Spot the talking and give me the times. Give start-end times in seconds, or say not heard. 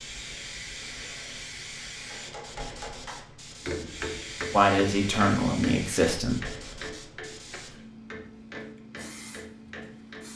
4.5-6.4.